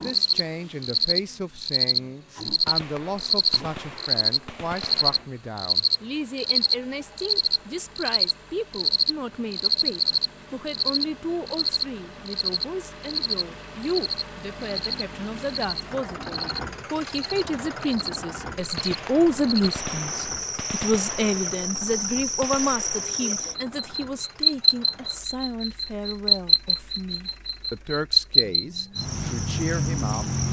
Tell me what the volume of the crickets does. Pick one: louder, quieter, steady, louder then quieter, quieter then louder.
quieter then louder.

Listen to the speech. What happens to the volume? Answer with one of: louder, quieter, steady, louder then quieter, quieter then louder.
louder then quieter.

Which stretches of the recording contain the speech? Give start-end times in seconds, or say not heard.
0.0-30.4.